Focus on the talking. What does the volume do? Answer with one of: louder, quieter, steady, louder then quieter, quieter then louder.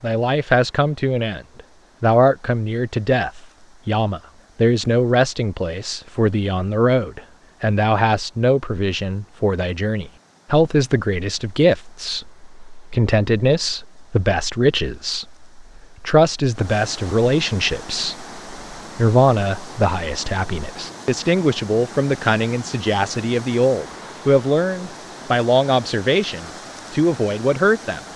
steady.